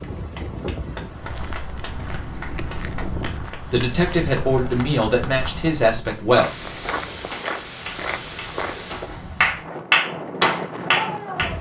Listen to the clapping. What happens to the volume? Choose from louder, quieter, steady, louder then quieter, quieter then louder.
louder.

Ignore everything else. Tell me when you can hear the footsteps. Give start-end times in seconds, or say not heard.
1.1-9.5.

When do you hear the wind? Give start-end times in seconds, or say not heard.
0.0-11.5.